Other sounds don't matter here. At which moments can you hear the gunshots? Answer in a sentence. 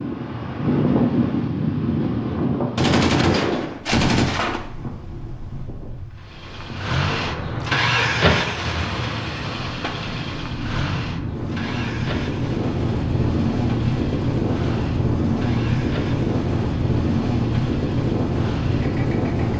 The gunshots can be heard from 2.8 to 4.7 s.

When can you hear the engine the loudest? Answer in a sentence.
The volume of the engine peaks at 8 seconds.